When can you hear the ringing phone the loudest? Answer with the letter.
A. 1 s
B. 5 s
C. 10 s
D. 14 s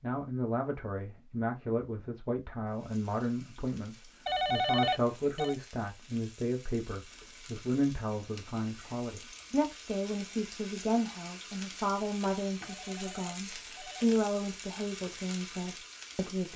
B.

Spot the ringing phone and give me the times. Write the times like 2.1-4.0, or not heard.
4.2-5.5, 12.7-14.2.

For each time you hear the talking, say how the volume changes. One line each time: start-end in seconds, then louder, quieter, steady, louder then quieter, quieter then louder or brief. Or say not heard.
0.0-16.5 steady.